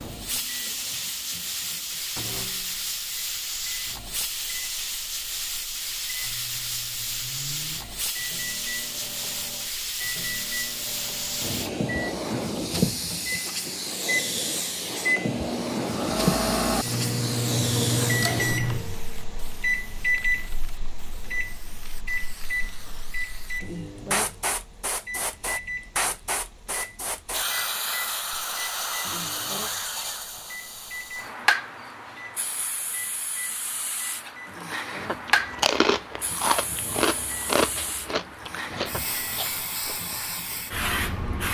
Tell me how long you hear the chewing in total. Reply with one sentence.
The chewing can be heard for 5 seconds in total.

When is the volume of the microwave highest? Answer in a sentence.
The volume of the microwave peaks at 18 seconds.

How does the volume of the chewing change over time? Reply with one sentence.
The loudness of the chewing goes down.